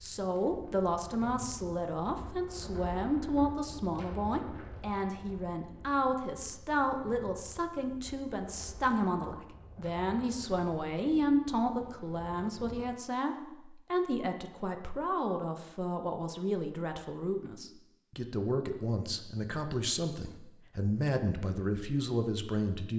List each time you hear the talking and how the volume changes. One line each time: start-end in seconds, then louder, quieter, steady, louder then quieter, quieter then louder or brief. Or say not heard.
0.0-22.9 steady.